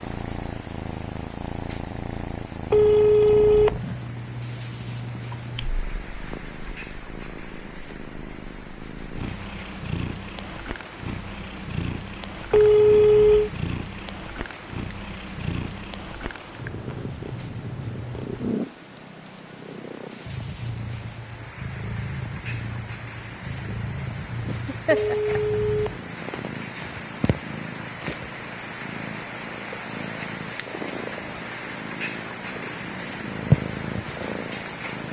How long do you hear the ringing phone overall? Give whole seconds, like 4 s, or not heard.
3 s.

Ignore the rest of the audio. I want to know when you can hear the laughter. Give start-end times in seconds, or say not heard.
24.4-25.4.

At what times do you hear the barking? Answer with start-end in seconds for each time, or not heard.
not heard.